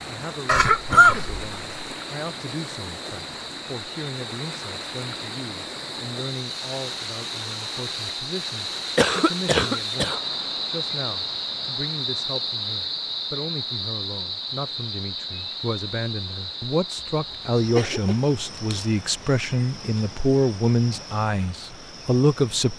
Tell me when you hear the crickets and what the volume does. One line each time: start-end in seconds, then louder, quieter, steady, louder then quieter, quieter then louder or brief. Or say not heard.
0.0-22.7 louder then quieter.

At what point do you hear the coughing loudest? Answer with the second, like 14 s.
1 s.